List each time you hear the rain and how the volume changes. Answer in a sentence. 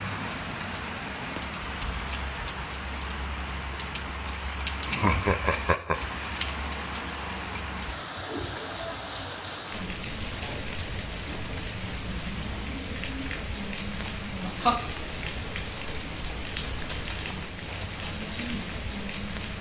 The rain can be heard from 0.0 to 19.5 s, at a steady volume.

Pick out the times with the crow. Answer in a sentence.
You can't hear the crow here.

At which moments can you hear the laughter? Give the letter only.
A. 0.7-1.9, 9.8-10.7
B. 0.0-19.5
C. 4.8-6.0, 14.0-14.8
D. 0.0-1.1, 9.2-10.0
C.